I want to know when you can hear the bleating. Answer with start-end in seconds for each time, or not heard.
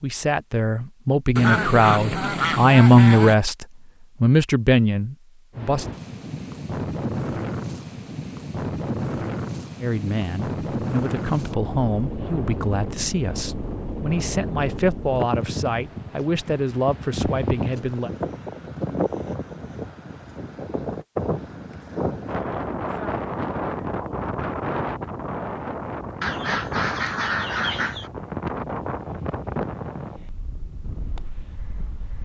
not heard.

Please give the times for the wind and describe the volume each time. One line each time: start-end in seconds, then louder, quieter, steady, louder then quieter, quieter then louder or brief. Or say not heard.
5.5-32.2 steady.